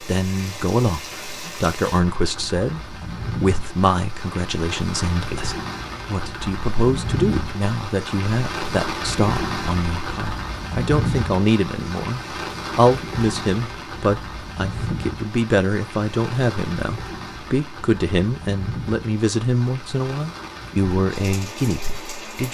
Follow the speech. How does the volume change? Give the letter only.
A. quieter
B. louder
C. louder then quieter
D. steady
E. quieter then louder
D.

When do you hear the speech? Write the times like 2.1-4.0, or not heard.
0.0-22.4.